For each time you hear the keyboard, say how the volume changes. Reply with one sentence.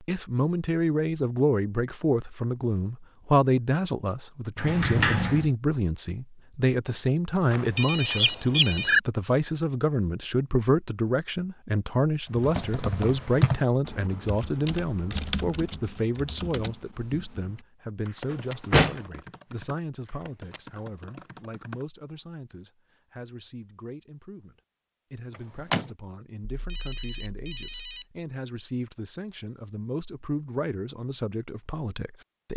You can hear the keyboard from 12.3 to 21.9 s, getting quieter.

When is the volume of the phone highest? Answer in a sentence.
The volume of the phone peaks at 9 seconds.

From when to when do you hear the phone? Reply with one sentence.
You can hear the phone from 7.5 to 9.0 s and from 26.6 to 28.1 s.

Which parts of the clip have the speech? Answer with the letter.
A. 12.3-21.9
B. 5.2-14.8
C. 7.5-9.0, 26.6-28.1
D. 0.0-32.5
D.